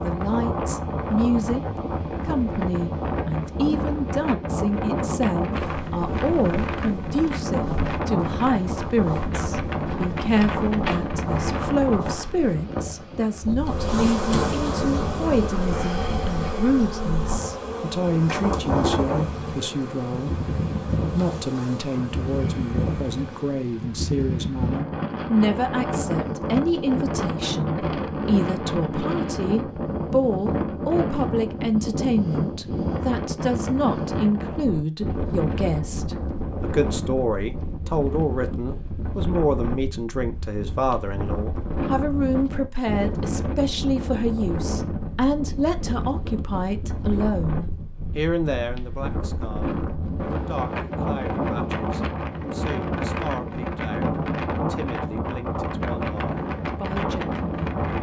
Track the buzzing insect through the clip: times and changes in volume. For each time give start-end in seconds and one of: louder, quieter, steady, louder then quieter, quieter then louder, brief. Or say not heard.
13.6-23.6 quieter.